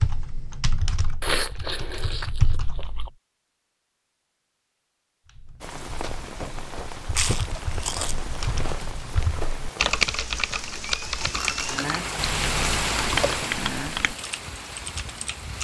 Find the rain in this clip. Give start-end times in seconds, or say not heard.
5.6-15.5.